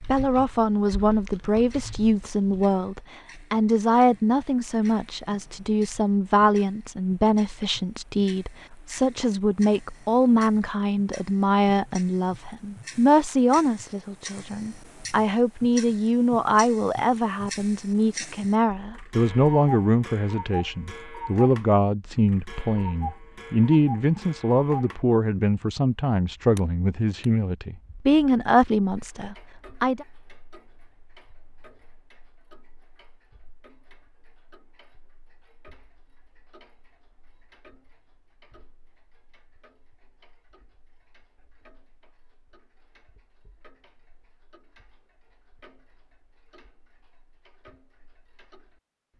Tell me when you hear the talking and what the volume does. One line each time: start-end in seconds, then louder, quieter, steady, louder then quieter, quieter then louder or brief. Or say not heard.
0.0-30.1 steady.